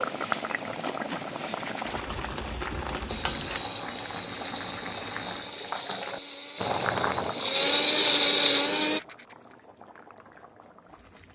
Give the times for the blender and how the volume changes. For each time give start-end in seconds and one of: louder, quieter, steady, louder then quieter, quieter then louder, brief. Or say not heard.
3.0-9.0 louder.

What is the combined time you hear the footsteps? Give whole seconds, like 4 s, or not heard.
not heard.